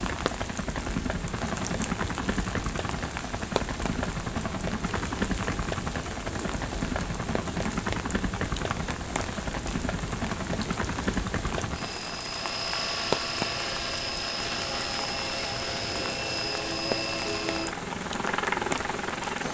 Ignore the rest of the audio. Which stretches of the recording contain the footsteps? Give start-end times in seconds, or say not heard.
not heard.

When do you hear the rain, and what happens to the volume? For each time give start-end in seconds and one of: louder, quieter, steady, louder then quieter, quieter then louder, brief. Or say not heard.
0.0-19.4 steady.